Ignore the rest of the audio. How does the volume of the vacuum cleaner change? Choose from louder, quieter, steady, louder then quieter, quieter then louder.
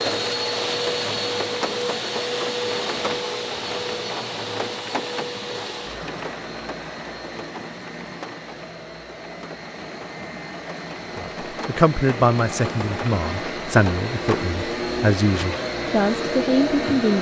quieter then louder.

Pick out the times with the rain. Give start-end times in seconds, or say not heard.
0.0-14.4.